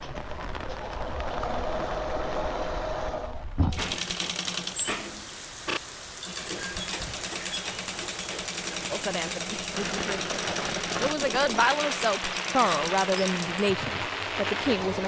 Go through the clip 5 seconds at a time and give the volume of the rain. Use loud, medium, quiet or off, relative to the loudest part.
medium, medium, loud.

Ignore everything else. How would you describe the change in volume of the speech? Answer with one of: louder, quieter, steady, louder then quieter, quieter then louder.
louder.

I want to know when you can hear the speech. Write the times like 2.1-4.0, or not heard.
8.9-15.0.